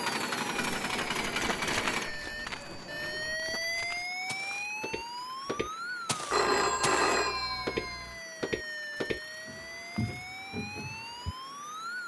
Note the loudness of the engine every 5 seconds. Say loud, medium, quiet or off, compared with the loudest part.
loud, quiet, quiet.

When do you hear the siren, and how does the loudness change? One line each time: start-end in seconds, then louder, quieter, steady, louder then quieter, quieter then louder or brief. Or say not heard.
0.0-12.0 louder then quieter.